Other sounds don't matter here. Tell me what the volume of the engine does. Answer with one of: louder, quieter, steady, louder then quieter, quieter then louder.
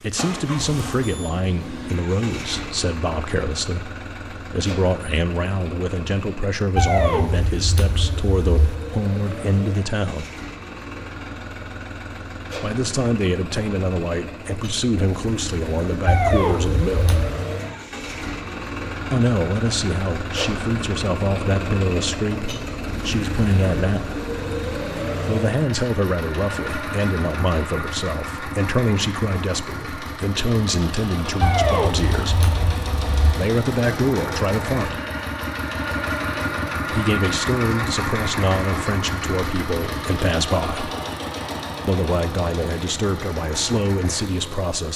louder.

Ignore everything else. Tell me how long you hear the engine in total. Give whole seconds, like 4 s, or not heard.
45 s.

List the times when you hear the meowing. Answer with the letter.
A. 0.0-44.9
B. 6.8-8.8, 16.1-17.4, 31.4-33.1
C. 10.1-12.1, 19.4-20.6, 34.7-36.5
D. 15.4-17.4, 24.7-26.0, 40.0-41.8
B.